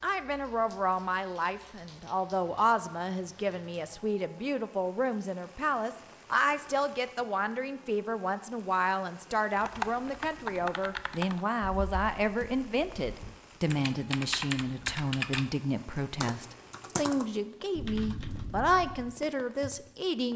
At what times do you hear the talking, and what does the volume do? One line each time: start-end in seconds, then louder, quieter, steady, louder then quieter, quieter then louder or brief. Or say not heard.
0.0-20.3 steady.